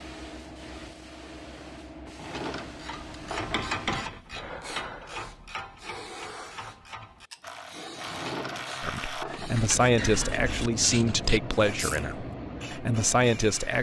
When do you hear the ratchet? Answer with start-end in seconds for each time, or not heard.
2.6-12.1.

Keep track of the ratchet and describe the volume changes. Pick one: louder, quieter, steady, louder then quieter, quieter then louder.
quieter then louder.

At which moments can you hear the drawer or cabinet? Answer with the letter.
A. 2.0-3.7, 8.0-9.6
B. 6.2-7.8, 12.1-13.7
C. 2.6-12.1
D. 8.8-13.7
A.